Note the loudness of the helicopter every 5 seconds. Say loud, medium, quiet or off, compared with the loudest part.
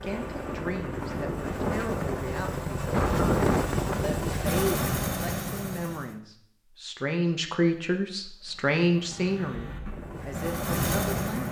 loud, medium, loud.